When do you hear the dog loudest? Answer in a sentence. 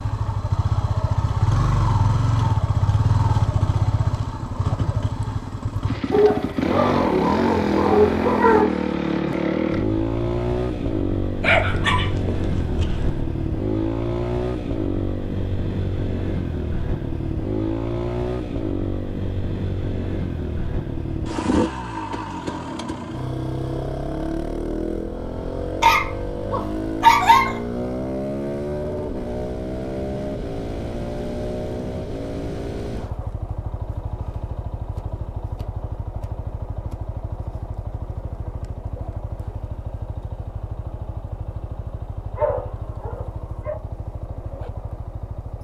The volume of the dog peaks at 27 seconds.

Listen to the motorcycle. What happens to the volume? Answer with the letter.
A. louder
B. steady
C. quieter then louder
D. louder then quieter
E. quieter
E.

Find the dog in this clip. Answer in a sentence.
You can hear the dog from 6.1 to 8.7 s, from 11.4 to 13.2 s, from 25.8 to 27.6 s and from 42.4 to 43.8 s.